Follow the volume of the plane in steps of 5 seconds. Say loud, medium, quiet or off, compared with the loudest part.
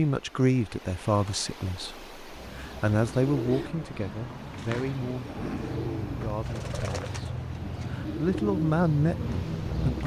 off, loud.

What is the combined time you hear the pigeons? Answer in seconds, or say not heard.
8 s.